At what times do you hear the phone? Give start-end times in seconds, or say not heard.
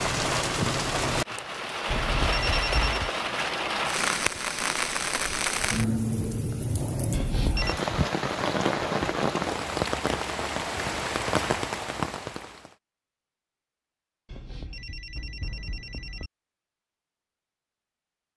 1.9-3.1, 7.1-7.8, 14.2-16.3.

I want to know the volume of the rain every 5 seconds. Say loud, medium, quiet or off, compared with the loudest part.
loud, loud, loud, off.